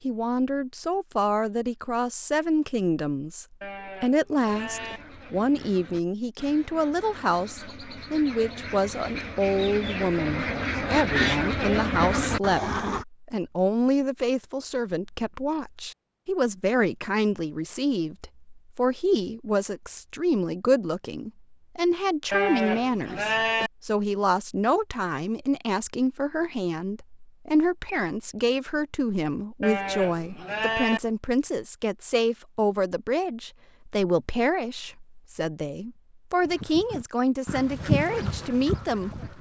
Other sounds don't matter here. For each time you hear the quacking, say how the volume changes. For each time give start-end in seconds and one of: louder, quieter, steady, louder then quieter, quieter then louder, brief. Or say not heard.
4.4-13.1 louder
36.4-39.3 brief.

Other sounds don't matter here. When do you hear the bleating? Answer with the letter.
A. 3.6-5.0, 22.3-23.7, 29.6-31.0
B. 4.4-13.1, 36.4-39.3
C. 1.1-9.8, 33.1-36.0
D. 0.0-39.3
A.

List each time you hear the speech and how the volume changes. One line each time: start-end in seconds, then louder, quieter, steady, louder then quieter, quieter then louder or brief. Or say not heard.
0.0-39.3 steady.